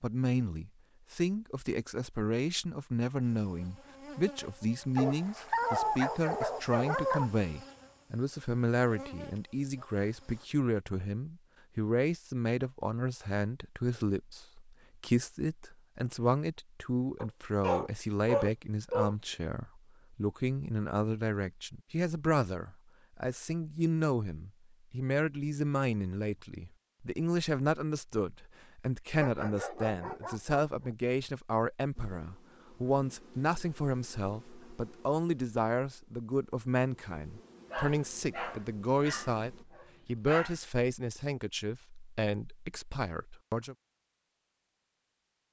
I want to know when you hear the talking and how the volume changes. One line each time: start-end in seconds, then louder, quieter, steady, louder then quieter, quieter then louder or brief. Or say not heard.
0.0-43.8 steady.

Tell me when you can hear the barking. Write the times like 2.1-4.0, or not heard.
5.0-7.3, 17.1-19.1, 29.2-30.9, 37.7-40.6.